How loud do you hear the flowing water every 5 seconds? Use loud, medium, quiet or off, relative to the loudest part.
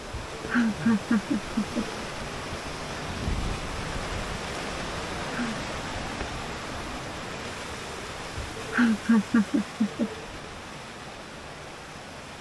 loud, loud, medium.